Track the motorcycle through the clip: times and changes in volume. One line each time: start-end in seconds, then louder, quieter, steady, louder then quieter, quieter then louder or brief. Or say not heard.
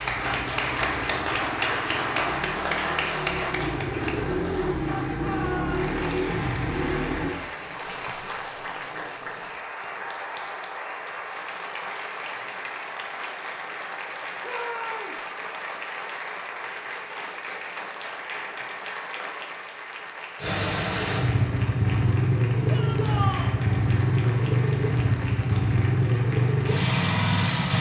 0.0-7.3 louder
20.4-27.7 steady.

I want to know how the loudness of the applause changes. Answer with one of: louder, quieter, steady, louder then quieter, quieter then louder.
quieter.